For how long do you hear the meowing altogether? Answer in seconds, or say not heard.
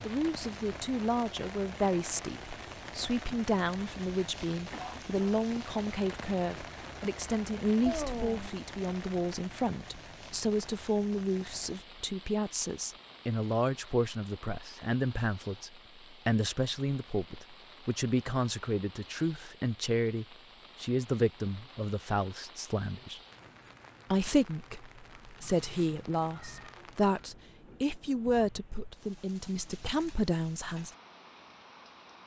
2 s.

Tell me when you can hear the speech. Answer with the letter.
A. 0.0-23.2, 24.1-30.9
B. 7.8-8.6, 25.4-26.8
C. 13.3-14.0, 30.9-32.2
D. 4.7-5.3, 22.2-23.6
A.